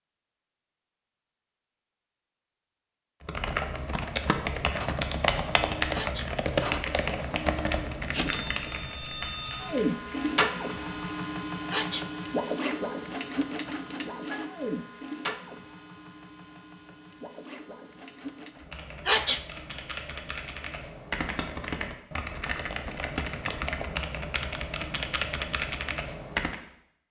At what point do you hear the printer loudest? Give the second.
10 s.